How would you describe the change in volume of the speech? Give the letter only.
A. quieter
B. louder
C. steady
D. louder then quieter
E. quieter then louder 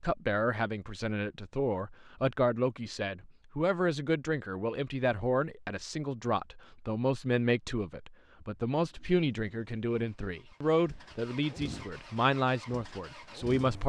C.